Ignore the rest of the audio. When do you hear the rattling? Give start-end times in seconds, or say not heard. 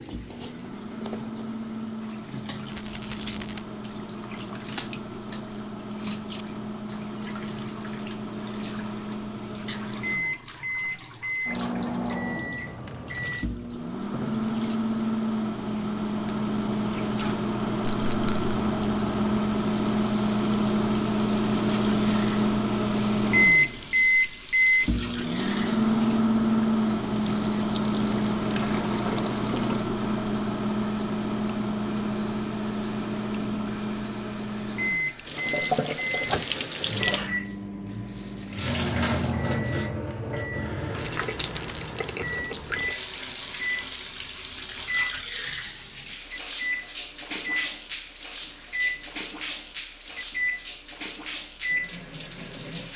2.6-3.6, 17.8-18.6, 41.0-41.9.